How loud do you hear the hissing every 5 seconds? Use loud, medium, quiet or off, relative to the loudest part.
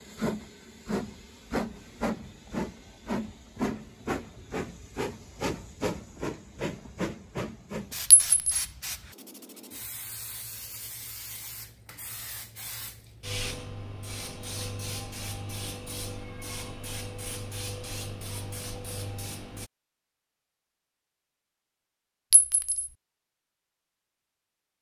loud, loud, medium, medium, off.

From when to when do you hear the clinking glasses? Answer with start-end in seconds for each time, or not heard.
8.1-8.7, 22.3-22.9.